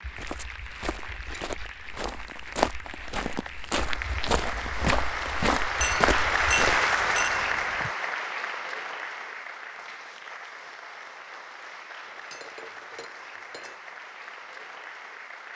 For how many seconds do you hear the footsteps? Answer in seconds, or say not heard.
7 s.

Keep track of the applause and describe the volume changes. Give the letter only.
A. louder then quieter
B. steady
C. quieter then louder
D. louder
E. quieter
A.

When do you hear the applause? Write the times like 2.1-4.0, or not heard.
0.0-15.5.